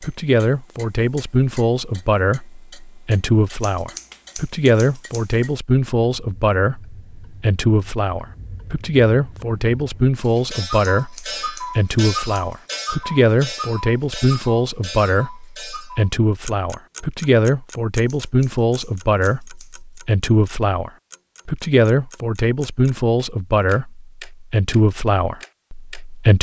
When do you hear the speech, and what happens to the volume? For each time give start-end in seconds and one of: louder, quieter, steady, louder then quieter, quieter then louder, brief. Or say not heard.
0.0-26.3 steady.